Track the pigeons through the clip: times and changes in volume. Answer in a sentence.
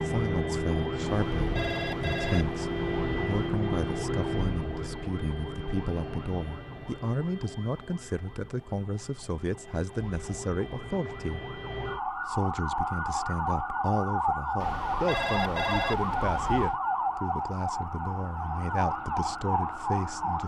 You can't hear the pigeons here.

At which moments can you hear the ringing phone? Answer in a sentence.
The ringing phone can be heard from 1.1 to 3.5 s and from 14.6 to 16.8 s.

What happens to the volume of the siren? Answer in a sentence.
The loudness of the siren goes down, then up.